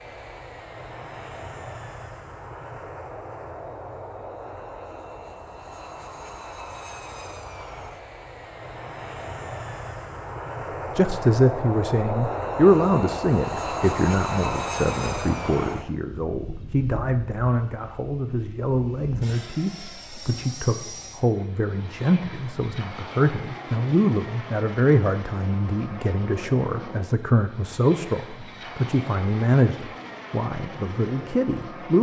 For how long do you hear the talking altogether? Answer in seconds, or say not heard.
21 s.